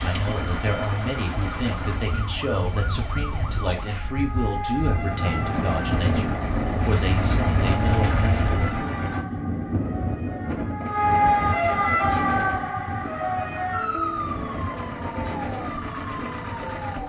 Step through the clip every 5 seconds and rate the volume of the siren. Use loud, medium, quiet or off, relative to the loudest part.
medium, medium, loud, medium.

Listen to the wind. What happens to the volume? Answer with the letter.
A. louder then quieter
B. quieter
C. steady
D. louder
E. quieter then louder
A.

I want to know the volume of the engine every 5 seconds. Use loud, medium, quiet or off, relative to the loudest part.
loud, loud, medium, loud.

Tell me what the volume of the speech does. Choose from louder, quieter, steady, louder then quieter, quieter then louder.
steady.